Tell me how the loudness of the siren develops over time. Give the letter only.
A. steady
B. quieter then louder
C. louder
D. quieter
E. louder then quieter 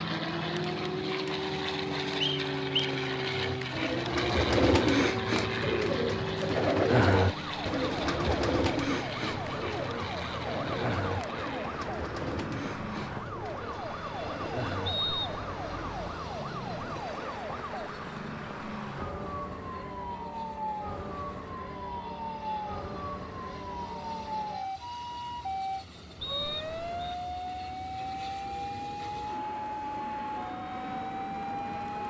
A.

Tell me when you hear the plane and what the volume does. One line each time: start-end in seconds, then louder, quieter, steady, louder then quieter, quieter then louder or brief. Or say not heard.
0.0-32.0 quieter then louder.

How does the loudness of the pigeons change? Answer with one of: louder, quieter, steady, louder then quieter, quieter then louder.
quieter.